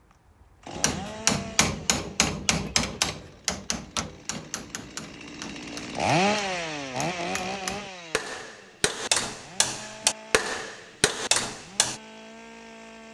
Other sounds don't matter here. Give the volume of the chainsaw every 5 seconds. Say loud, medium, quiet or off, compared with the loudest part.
quiet, loud, quiet.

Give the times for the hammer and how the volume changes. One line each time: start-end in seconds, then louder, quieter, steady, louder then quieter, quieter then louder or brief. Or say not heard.
0.8-12.0 quieter then louder.